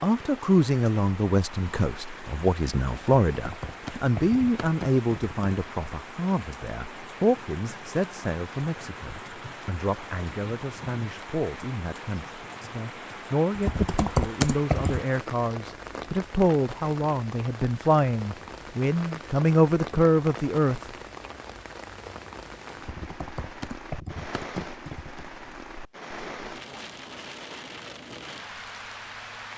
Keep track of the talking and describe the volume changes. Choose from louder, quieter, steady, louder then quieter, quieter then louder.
quieter then louder.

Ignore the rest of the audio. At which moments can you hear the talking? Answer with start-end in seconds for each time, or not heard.
0.0-20.8.